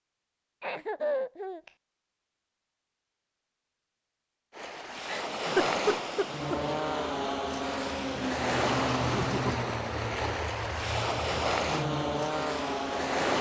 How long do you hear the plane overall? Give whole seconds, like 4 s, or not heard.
7 s.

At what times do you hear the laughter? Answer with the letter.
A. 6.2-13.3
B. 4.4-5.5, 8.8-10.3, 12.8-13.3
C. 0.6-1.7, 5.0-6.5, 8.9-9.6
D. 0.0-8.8
C.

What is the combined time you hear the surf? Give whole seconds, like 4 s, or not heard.
9 s.